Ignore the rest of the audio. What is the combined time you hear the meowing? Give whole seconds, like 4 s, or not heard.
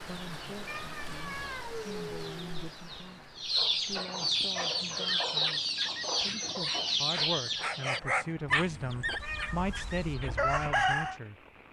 3 s.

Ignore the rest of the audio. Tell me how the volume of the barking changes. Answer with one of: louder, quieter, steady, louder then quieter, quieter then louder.
louder then quieter.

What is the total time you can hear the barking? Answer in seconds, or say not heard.
6 s.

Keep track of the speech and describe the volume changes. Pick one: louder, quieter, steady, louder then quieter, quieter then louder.
louder.